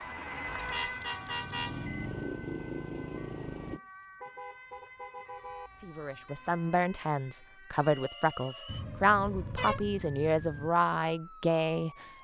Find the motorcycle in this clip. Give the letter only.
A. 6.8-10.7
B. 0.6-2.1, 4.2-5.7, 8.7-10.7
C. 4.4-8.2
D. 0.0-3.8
D.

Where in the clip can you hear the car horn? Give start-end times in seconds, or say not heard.
0.6-2.1, 4.2-5.7, 8.7-10.7.